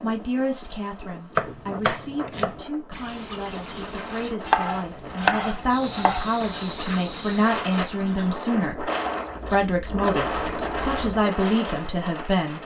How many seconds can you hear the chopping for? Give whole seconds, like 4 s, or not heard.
5 s.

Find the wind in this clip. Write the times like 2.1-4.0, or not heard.
0.0-12.5.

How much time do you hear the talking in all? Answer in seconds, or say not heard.
12 s.